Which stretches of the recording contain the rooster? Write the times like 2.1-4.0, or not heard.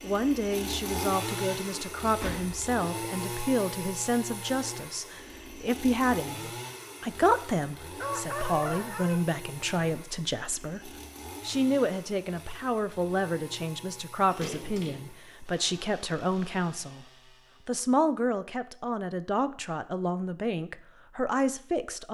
8.0-9.2.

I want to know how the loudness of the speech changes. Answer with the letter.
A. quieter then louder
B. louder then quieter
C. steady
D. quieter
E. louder
C.